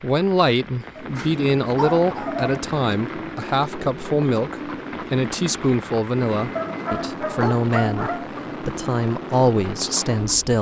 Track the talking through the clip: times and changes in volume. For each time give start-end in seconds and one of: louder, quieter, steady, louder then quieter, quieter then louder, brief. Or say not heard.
0.0-10.5 steady.